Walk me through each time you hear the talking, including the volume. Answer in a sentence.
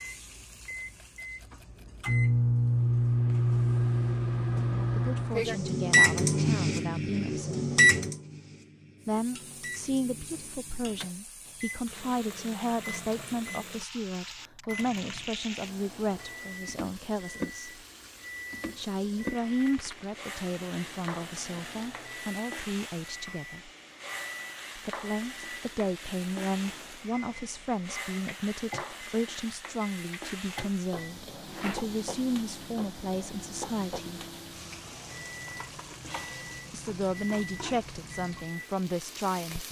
The talking can be heard briefly from 4.7 to 7.7 s; from 9.1 to 17.8 s, at a steady volume; from 18.8 to 23.7 s, getting quieter; from 24.8 to 34.2 s, at a steady volume; and briefly from 36.7 to 39.6 s.